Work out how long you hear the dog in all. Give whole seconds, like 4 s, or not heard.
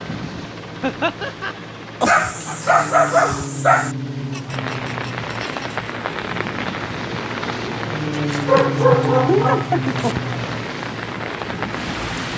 4 s.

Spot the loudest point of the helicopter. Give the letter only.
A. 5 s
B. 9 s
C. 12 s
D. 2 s
B.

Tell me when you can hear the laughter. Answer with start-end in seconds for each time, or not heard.
0.8-1.6, 4.3-5.8, 8.6-10.2.